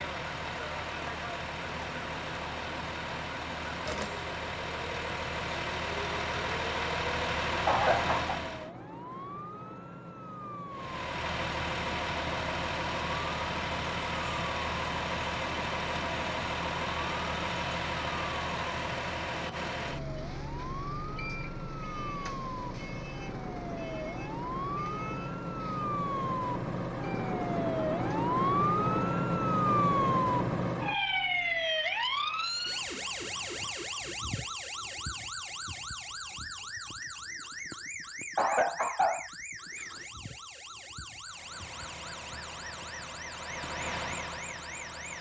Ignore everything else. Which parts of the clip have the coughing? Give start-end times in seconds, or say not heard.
7.7-8.3, 38.4-39.2.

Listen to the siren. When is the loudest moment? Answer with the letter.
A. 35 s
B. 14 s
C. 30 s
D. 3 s
C.